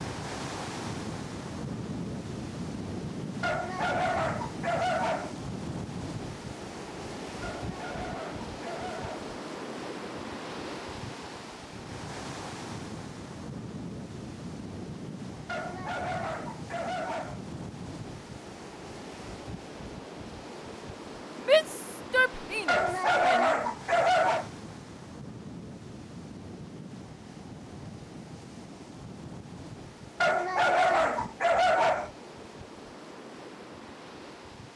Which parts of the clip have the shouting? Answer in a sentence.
The shouting can be heard from 21.4 to 23.5 s.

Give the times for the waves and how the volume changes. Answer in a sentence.
The waves can be heard from 0.0 to 34.7 s, getting quieter.